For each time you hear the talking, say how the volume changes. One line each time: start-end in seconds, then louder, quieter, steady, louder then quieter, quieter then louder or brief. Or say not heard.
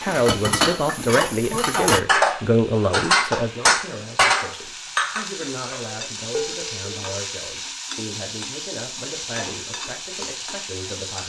0.0-11.2 quieter.